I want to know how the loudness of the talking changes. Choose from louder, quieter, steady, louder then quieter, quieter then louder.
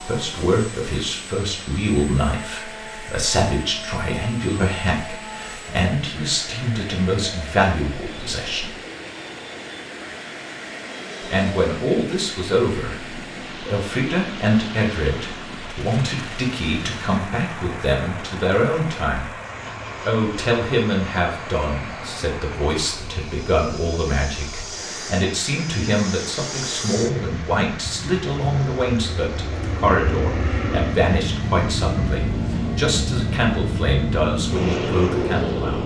steady.